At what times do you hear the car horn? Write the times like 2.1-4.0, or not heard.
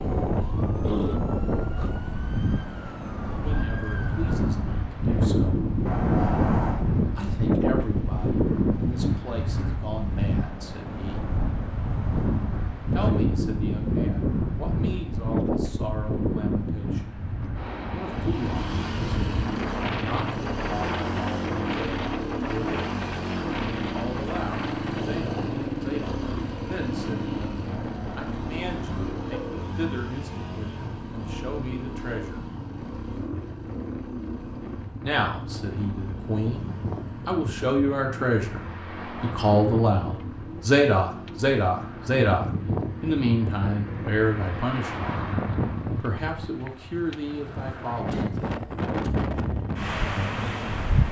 5.8-6.8, 27.8-29.6.